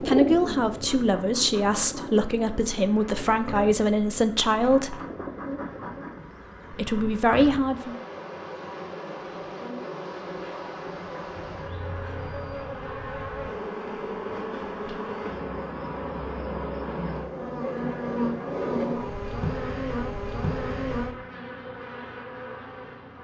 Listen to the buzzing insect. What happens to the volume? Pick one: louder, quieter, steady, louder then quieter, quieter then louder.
louder.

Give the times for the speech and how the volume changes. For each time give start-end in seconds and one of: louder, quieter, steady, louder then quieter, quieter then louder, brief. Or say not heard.
0.0-5.0 steady
6.7-8.0 brief.